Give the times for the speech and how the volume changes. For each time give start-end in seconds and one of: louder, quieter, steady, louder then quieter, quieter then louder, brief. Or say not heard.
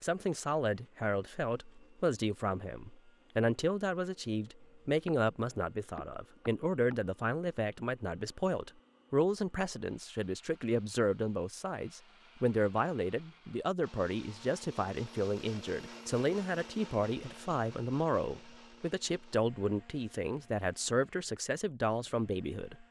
0.0-22.8 steady.